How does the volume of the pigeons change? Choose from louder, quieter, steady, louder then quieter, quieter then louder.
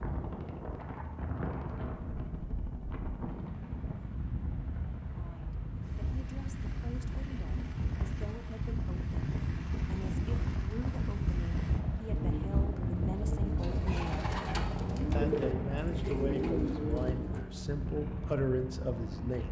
louder.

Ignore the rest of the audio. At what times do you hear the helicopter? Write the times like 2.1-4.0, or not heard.
0.0-19.4.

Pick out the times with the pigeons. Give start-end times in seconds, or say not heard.
12.1-17.4.